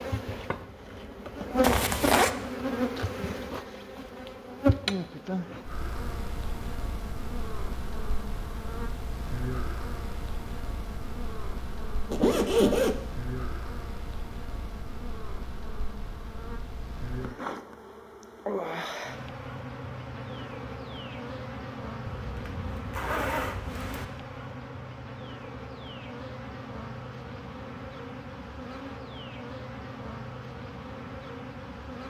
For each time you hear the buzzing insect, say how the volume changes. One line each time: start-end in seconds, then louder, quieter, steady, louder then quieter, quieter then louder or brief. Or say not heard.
0.0-32.0 quieter.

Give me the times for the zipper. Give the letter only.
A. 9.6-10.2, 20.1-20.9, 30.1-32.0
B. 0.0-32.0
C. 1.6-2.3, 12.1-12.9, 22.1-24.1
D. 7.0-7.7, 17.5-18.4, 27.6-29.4
C.